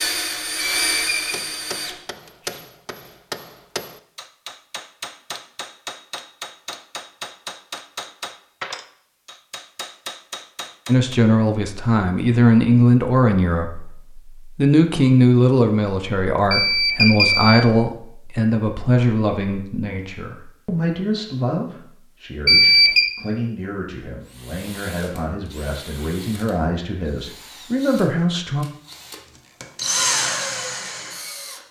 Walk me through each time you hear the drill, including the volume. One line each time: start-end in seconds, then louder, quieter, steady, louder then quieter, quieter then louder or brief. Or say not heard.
0.0-2.6 brief
24.2-31.6 louder.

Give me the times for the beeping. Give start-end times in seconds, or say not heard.
0.6-1.4, 16.5-17.6, 22.4-23.1.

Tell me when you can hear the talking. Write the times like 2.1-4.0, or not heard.
10.8-28.6.